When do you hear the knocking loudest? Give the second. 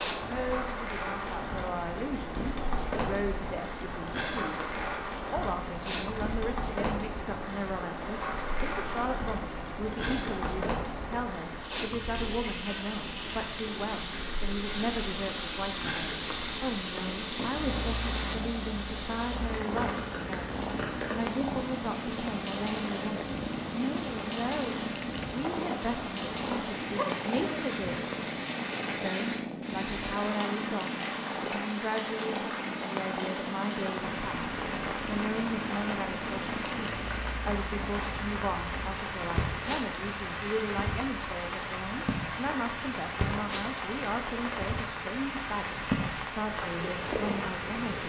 27 s.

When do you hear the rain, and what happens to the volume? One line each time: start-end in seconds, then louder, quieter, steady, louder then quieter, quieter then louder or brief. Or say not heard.
0.0-48.0 steady.